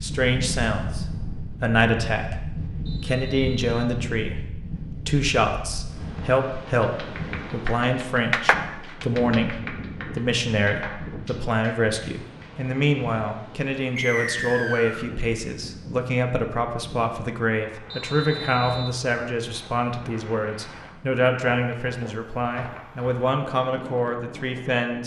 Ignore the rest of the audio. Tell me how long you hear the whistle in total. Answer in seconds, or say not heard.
3 s.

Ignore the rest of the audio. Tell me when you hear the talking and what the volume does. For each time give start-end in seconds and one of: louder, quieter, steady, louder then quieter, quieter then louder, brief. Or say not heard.
0.0-2.4 brief
3.0-25.0 steady.